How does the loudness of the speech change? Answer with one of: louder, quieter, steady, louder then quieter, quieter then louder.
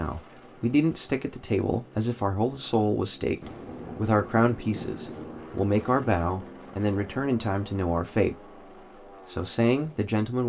steady.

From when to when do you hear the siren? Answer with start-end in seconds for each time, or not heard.
not heard.